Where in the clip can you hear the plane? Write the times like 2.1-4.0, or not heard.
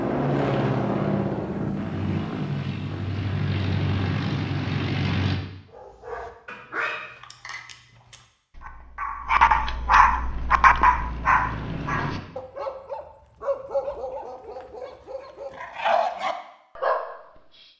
0.0-5.4, 10.2-12.2.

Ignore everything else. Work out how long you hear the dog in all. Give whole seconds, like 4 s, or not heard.
12 s.